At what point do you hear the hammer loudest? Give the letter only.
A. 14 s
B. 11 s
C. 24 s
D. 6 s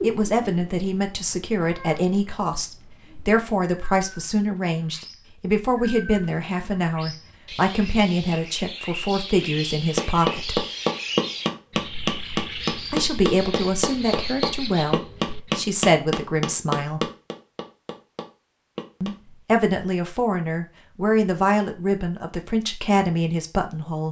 B.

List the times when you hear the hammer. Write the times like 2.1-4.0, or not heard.
9.9-19.1.